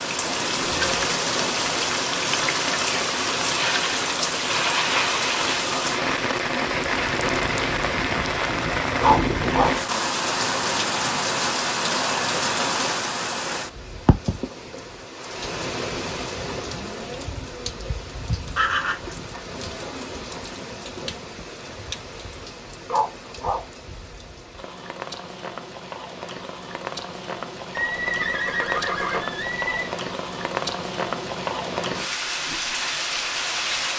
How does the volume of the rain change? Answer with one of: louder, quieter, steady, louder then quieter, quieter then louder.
quieter then louder.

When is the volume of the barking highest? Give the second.
9 s.